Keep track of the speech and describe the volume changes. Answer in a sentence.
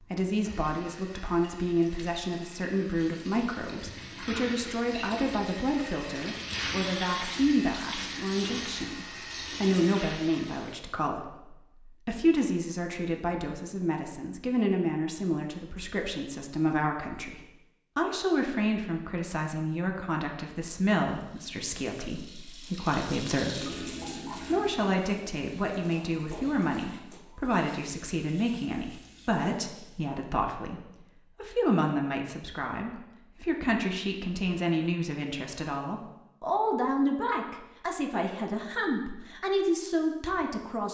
The volume of the speech stays about the same.